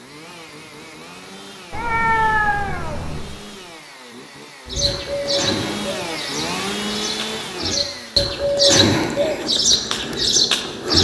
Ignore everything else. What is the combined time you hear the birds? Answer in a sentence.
You can hear the birds for 6 seconds altogether.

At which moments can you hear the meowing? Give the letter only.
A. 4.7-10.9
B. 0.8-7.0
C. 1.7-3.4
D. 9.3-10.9
C.